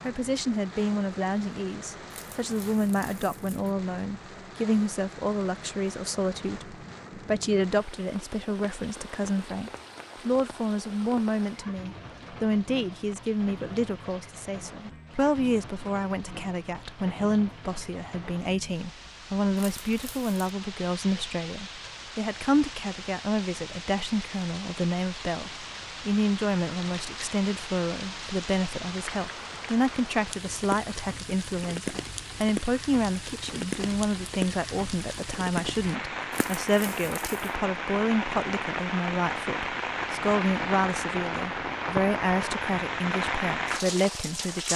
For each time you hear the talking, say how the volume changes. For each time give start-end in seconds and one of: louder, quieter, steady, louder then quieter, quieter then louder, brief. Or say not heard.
0.0-44.7 steady.